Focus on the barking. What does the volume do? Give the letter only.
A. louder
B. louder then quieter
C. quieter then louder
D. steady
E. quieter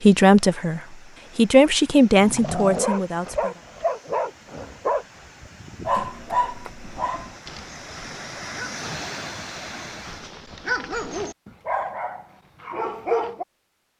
C.